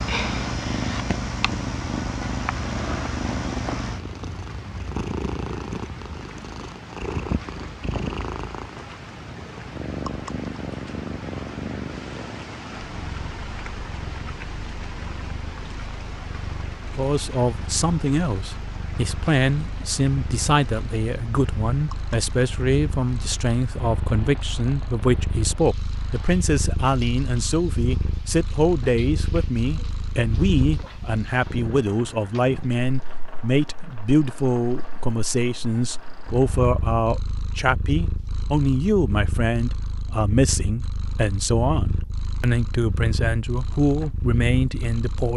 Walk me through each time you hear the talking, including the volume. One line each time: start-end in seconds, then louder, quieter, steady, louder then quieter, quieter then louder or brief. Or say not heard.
16.9-45.3 steady.